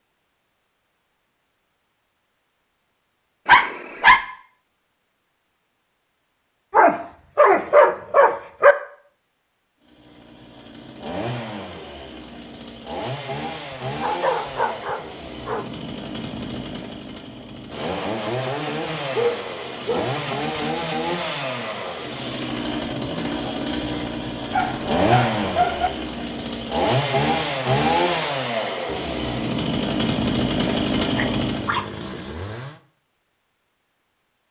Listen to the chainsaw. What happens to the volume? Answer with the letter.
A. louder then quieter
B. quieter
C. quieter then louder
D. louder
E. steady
D.